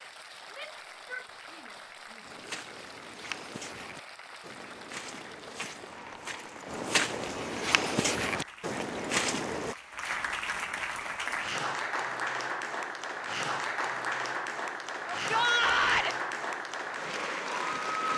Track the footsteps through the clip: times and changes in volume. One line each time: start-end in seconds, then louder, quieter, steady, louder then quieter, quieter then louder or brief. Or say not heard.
2.2-9.8 louder.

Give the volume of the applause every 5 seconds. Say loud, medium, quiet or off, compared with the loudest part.
quiet, quiet, loud, loud.